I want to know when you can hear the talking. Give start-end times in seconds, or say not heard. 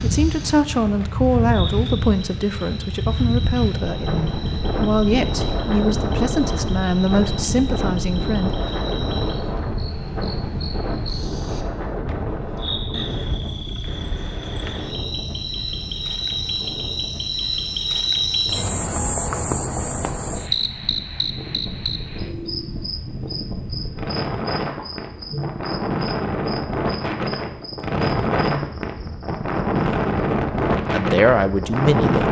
0.0-8.6, 30.9-32.2.